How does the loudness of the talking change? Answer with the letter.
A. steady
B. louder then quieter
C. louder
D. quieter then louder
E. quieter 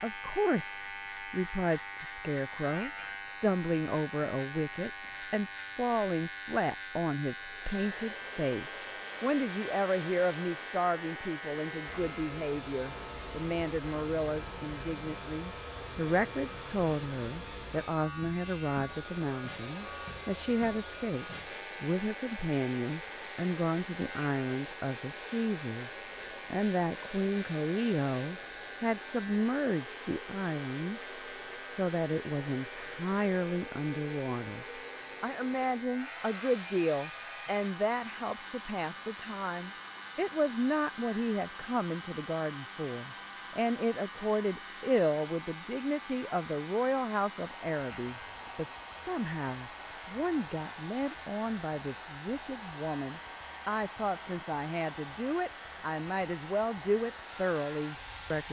A.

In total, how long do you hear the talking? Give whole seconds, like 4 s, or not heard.
58 s.